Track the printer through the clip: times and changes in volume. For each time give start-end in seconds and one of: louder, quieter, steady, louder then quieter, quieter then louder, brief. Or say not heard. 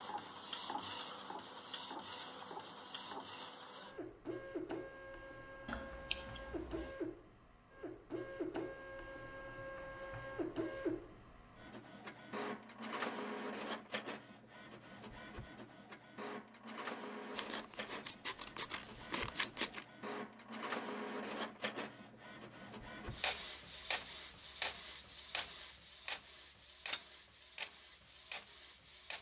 0.0-29.1 steady.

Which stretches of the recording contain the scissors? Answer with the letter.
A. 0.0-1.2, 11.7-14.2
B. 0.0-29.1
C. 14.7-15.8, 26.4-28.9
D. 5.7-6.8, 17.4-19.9
D.